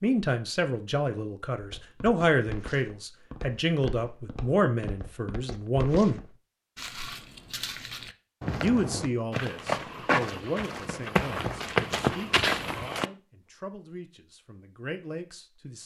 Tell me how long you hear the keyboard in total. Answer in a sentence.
The keyboard can't be heard in this clip.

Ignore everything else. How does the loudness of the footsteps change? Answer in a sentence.
The volume of the footsteps goes up.